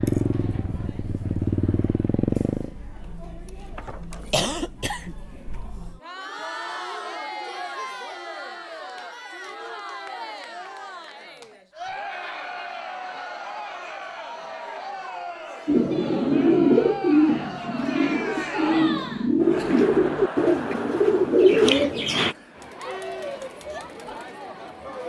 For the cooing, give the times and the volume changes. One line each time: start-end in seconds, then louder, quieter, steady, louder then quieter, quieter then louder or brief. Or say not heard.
15.7-22.4 quieter then louder.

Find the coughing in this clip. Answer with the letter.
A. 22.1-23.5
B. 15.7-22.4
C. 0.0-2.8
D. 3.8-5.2
D.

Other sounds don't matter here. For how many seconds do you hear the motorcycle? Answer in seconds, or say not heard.
3 s.